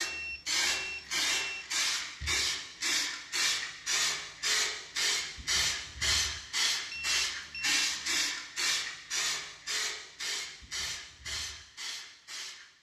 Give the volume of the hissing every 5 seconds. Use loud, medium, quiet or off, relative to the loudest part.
loud, loud, medium.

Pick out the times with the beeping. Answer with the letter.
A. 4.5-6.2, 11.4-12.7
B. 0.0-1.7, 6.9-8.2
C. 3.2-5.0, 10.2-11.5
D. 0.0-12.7
B.